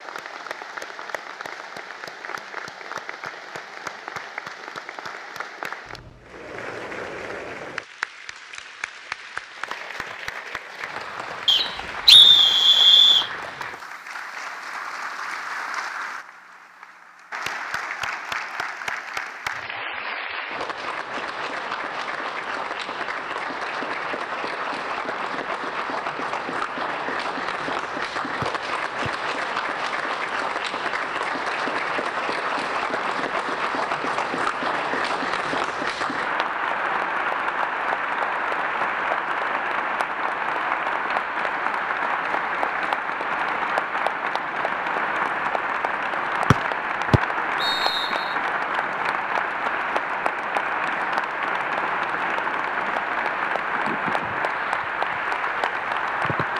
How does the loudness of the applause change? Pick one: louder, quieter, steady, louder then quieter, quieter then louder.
louder.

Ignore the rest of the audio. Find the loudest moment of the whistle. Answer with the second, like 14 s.
12 s.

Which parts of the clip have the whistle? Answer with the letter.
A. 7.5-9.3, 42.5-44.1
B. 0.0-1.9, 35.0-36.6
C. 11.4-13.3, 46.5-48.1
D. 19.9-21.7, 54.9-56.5
C.